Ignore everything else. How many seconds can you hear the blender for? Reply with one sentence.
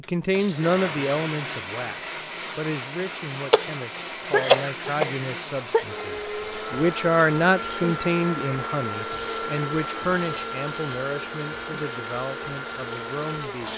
The blender can be heard for 14 seconds in total.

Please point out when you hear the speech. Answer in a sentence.
You can hear the speech from 0.0 to 13.7 s.